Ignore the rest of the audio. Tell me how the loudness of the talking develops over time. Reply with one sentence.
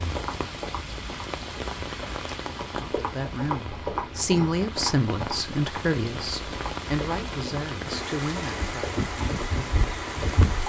The loudness of the talking goes up, then down.